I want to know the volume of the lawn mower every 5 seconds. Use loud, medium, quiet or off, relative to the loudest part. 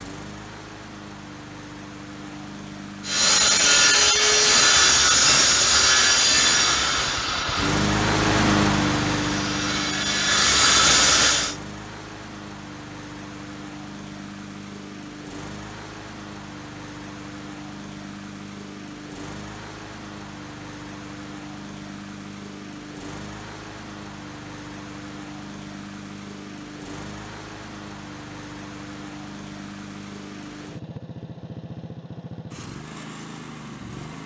quiet, loud, quiet, quiet, quiet, quiet, quiet.